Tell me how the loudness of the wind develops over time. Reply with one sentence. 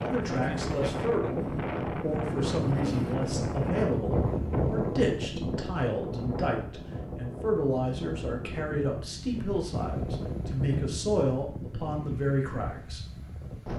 The loudness of the wind goes down.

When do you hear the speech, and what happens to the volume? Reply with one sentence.
The speech can be heard from 0.0 to 13.0 s, at a steady volume.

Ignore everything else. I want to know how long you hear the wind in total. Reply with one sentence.
You can hear the wind for 14 seconds altogether.